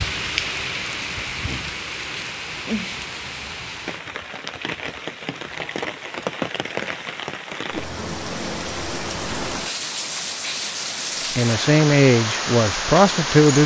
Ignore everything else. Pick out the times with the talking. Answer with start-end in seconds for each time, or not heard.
11.3-13.6.